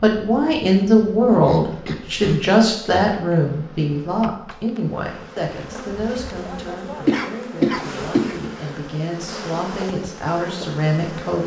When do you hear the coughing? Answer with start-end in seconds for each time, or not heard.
1.4-3.4, 7.0-8.3.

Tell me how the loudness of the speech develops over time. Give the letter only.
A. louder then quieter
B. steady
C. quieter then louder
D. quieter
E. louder
C.